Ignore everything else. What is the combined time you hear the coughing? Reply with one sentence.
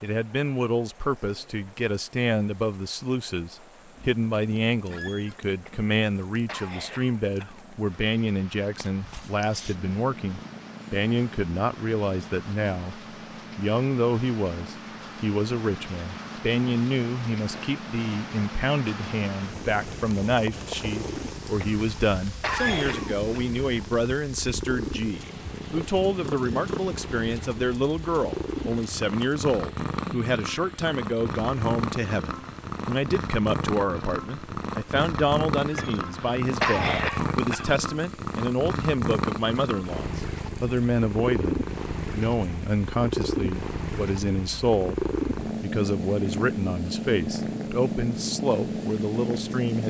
The coughing can be heard for 6 seconds in total.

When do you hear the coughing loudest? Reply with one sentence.
The loudest moment of the coughing is at 37 seconds.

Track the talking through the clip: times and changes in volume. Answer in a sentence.
The talking can be heard from 0.0 to 49.8 s, at a steady volume.